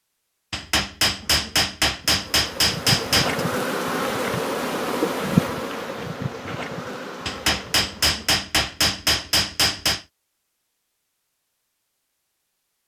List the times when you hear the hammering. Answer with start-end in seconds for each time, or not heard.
0.5-3.5, 7.2-10.1.